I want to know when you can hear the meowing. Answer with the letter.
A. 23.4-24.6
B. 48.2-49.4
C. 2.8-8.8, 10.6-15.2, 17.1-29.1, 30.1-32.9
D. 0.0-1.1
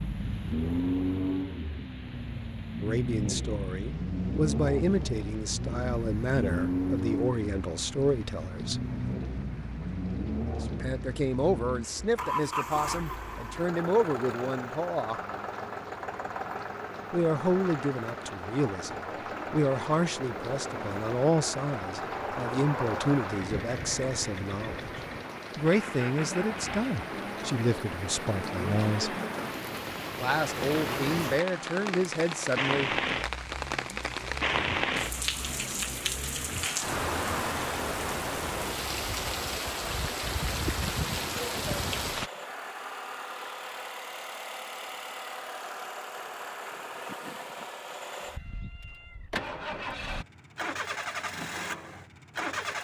B.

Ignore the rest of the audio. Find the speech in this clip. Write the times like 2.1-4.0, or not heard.
2.8-8.8, 10.6-15.2, 17.1-29.1, 30.1-32.9.